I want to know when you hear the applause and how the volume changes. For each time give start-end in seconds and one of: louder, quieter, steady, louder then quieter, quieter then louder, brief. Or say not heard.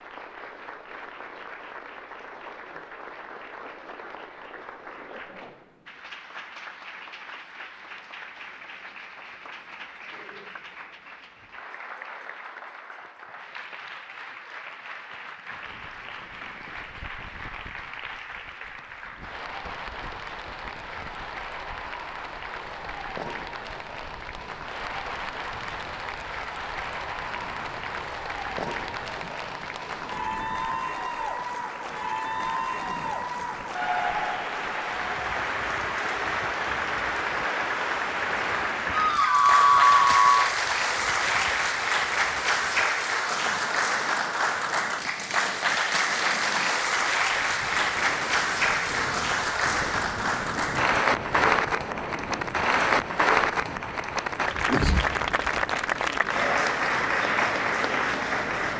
0.0-58.7 louder.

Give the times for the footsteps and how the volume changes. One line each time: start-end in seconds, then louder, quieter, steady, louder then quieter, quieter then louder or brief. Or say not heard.
not heard.